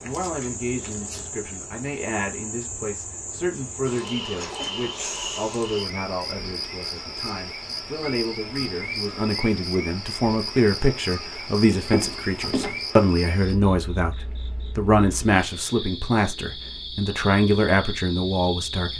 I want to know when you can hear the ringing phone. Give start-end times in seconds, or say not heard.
11.8-12.8.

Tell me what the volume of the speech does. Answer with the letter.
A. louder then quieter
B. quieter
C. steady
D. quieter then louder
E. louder
E.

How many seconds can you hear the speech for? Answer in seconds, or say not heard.
19 s.